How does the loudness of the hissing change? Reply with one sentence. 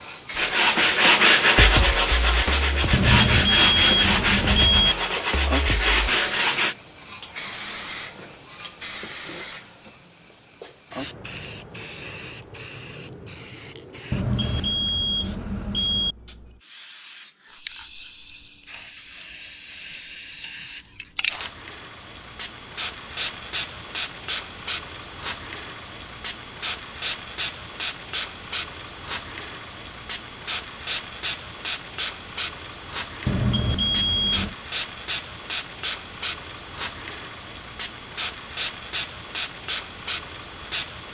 The volume of the hissing goes down, then up.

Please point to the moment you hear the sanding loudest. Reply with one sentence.
The volume of the sanding peaks at 1 second.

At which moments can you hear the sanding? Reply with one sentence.
The sanding can be heard from 0.3 to 6.8 s.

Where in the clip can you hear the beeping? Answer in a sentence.
The beeping can be heard from 2.9 to 5.0 s, from 14.1 to 16.1 s and from 33.2 to 34.5 s.